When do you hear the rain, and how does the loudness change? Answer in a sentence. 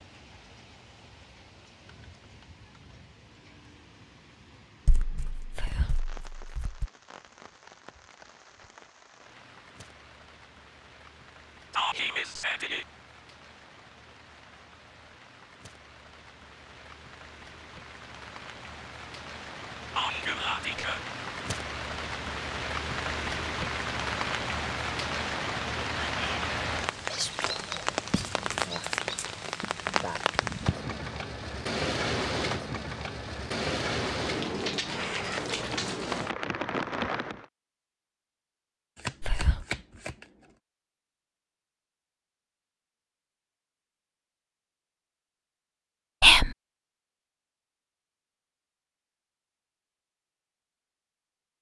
The rain can be heard from 0.0 to 37.5 s, getting louder.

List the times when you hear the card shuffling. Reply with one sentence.
You can hear the card shuffling from 4.8 to 6.9 s, from 28.1 to 29.2 s and from 39.0 to 40.2 s.